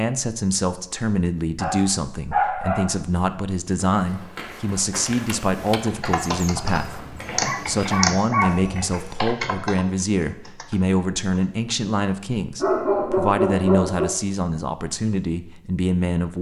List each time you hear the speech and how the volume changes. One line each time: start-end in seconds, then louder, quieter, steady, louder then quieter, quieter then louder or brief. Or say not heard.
0.0-16.3 steady.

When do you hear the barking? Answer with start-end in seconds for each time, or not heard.
1.6-3.0, 7.3-8.8, 12.6-14.2.